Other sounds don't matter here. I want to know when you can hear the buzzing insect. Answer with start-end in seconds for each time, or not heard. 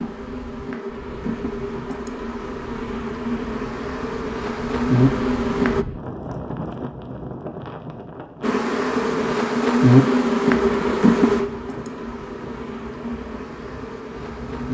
0.0-5.8, 8.4-14.6.